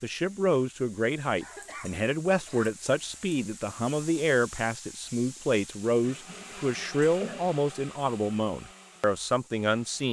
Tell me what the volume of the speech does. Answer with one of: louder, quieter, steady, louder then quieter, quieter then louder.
steady.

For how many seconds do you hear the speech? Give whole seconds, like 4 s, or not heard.
10 s.